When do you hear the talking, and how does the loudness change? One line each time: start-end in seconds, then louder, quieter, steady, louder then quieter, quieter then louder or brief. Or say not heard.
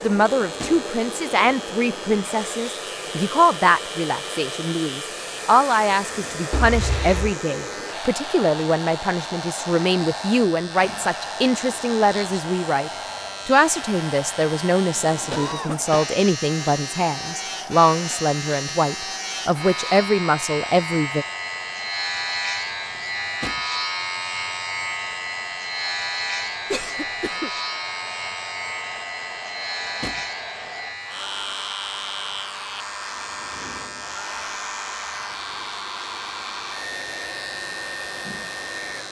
0.0-21.2 steady.